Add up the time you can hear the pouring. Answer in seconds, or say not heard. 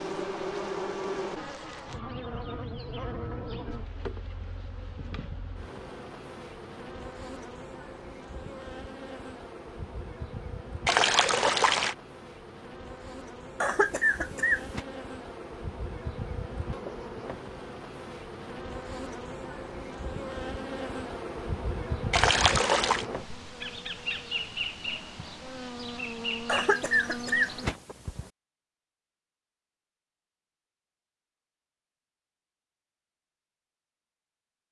2 s.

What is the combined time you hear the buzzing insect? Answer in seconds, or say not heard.
28 s.